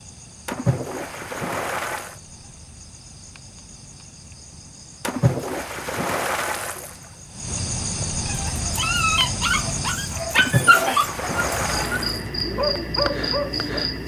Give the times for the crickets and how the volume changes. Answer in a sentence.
The crickets can be heard from 0.0 to 14.0 s, getting louder.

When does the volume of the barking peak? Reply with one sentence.
The loudest moment of the barking is at 11 seconds.